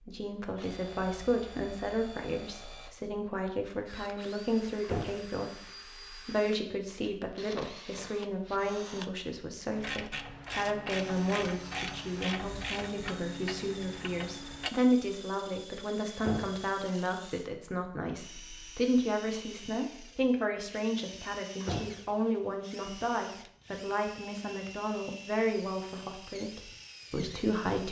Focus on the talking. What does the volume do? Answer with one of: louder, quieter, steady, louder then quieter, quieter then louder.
steady.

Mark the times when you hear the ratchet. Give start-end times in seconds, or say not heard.
9.7-14.7.